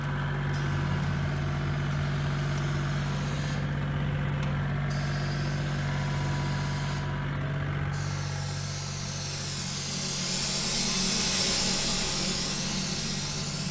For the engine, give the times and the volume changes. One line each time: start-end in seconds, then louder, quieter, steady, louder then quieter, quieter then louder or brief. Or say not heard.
0.0-13.6 quieter.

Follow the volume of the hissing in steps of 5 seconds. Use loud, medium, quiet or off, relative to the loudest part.
quiet, medium, loud.